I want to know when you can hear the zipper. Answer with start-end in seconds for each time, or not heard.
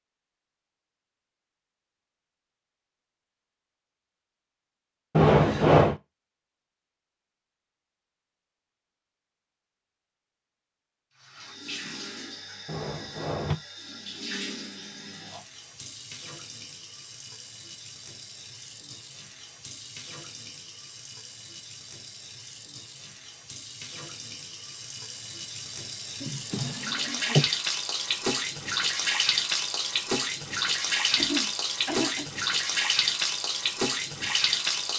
not heard.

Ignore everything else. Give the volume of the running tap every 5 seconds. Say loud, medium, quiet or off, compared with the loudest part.
off, off, quiet, quiet, quiet, loud, loud.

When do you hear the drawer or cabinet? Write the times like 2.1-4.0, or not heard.
5.2-6.0, 12.7-13.6, 26.2-27.5.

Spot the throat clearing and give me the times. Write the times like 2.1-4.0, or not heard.
31.1-32.2.